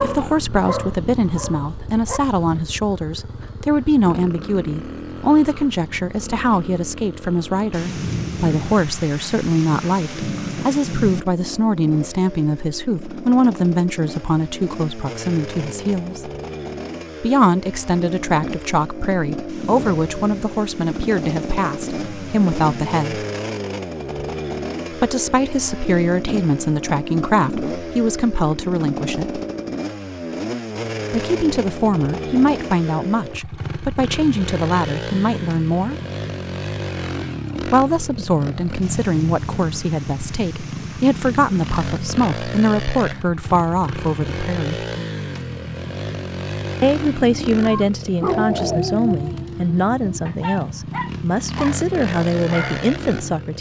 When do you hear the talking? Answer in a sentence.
You can hear the talking from 0.0 to 16.3 s, from 17.2 to 23.2 s, from 24.9 to 29.4 s, from 31.1 to 36.0 s, from 37.6 to 44.9 s and from 46.8 to 53.5 s.